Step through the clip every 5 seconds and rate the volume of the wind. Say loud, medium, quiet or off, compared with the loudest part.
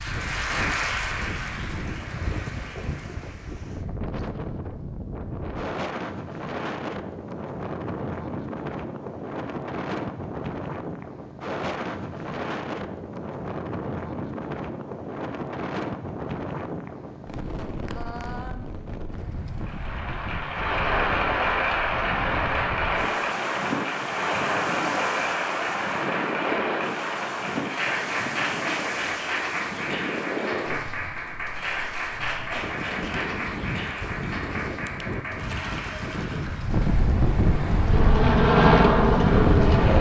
medium, medium, medium, medium, medium, medium, medium, loud.